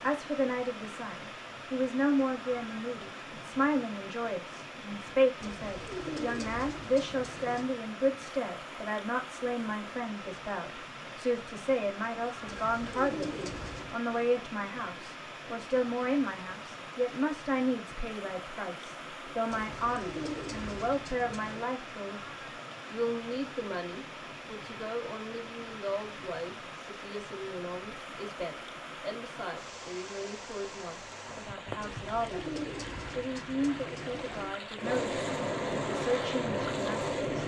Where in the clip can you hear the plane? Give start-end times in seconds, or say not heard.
34.8-37.4.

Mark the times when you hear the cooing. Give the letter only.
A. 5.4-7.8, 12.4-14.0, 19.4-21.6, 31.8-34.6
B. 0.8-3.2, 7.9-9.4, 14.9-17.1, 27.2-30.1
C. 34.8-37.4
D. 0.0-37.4
A.